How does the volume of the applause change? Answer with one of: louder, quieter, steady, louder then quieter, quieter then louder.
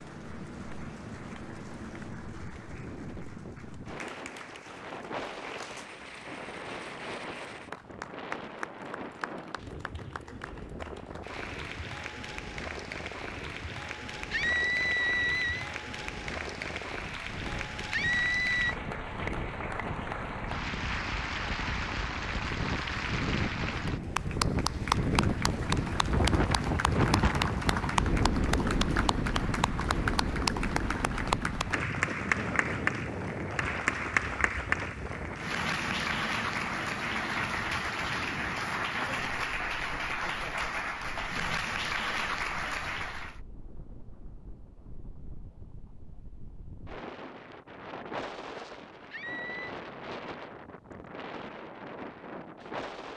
louder.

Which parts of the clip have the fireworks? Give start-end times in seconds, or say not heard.
not heard.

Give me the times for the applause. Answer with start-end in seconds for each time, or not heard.
0.0-43.4.